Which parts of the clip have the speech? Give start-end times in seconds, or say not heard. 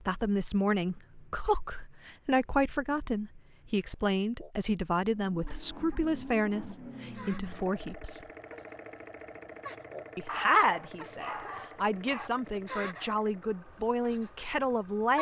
0.1-8.2, 10.2-15.1.